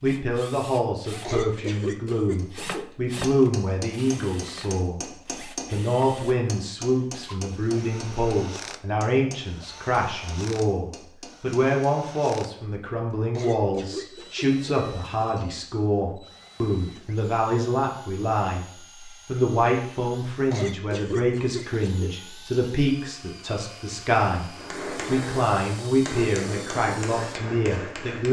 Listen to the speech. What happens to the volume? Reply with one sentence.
The volume of the speech stays about the same.